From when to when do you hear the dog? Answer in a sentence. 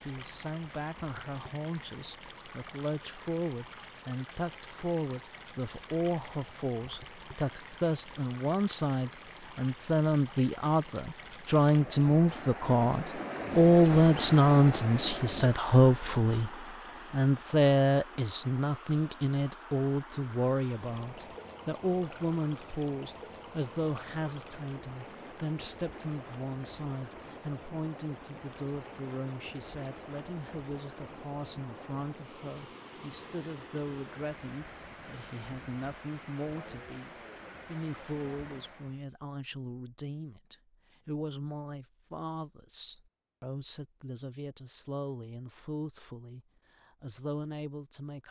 You can't hear the dog here.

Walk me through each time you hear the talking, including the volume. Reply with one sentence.
The talking can be heard from 0.1 to 48.2 s, getting louder then quieter.